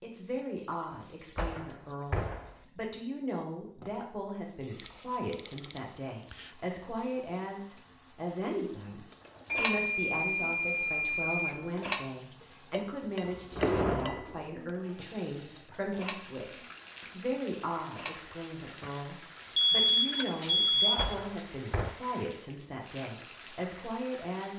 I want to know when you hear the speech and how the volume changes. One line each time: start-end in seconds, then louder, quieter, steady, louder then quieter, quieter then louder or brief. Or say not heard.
0.0-24.5 steady.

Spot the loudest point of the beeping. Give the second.
21 s.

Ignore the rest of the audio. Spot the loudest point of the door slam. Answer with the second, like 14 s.
14 s.